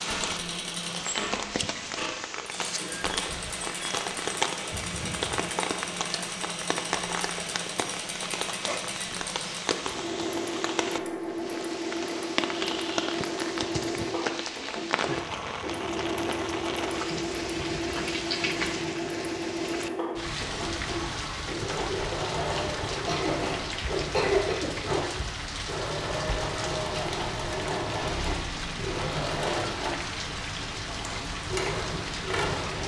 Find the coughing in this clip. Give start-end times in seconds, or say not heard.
4.7-5.4, 12.5-13.2, 22.9-24.7.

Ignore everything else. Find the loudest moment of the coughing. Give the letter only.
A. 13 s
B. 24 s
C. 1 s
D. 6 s
B.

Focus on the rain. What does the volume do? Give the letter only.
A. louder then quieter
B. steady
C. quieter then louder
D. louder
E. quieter
B.